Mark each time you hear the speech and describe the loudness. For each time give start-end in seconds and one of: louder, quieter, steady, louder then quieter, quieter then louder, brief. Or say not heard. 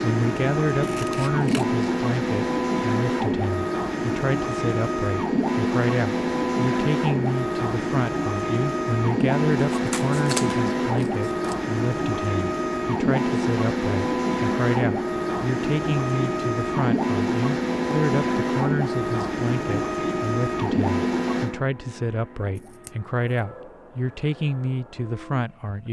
0.0-25.8 steady.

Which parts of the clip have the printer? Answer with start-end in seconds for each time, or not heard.
0.0-25.8.